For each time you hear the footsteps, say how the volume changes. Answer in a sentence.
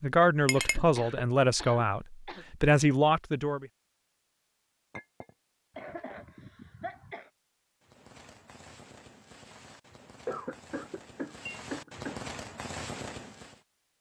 The footsteps can't be heard in this clip.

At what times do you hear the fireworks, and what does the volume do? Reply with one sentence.
The fireworks can be heard from 7.8 to 13.6 s, getting louder.